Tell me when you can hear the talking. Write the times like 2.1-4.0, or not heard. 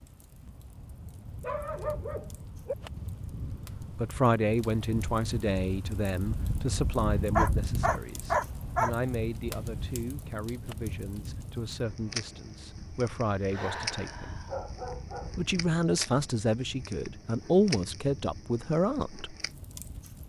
3.8-14.3, 15.3-19.4.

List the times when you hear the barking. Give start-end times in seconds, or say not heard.
1.2-2.8, 7.3-8.9, 13.5-15.3.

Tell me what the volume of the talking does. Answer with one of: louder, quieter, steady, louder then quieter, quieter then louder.
quieter then louder.